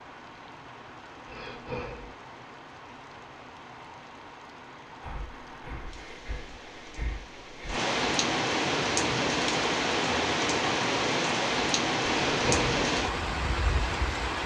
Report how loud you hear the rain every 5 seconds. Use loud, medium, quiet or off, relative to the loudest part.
quiet, loud, loud.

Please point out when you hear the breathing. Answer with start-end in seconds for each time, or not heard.
1.2-2.1, 5.0-7.8, 12.2-12.8.